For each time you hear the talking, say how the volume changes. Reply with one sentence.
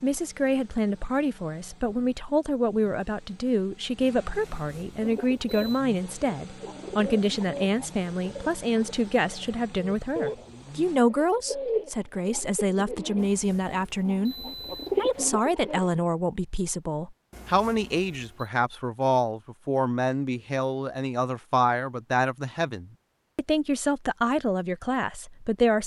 The talking can be heard from 0.0 to 25.8 s, at a steady volume.